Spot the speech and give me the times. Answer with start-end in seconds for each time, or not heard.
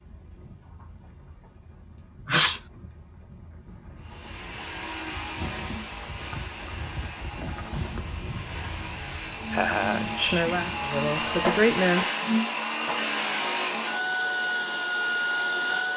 10.2-12.2.